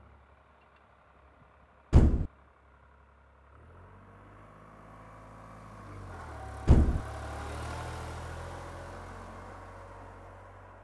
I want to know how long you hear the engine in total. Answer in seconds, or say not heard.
11 s.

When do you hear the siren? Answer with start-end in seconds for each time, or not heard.
not heard.